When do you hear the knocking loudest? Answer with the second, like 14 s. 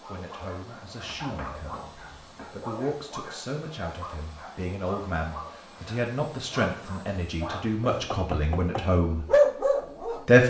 8 s.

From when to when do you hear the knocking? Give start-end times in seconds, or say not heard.
1.0-2.5, 7.9-8.8.